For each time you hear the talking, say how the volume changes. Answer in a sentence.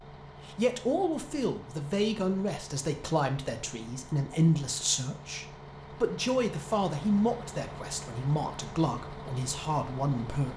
The talking can be heard from 0.5 to 10.5 s, at a steady volume.